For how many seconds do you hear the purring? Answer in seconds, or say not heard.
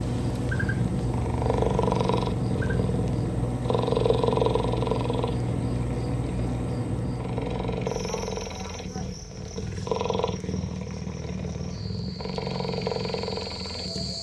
14 s.